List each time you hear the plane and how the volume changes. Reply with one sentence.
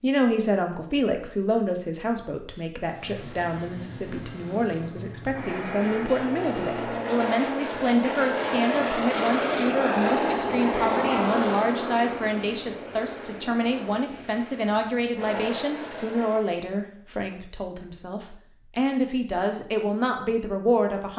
You can hear the plane from 2.9 to 16.5 s, getting louder then quieter.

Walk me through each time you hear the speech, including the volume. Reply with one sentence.
The speech can be heard from 0.0 to 21.1 s, at a steady volume.